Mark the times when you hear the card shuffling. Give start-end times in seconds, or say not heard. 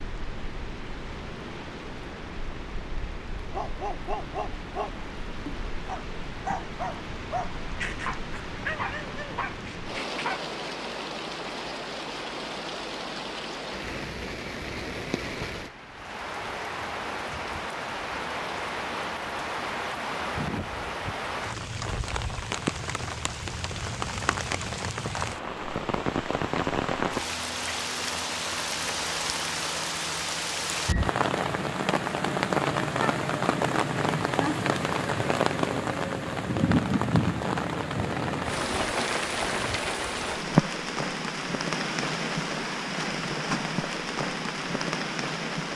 not heard.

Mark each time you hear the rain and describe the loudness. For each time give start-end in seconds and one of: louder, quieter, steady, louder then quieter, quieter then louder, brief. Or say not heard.
0.0-45.7 louder.